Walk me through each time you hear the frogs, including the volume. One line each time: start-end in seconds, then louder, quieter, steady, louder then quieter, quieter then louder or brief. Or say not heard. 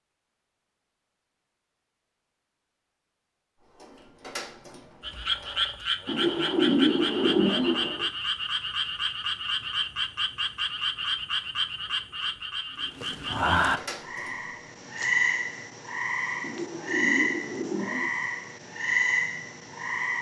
5.0-20.1 steady.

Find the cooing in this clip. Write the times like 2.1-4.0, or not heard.
6.0-8.1, 16.4-18.1.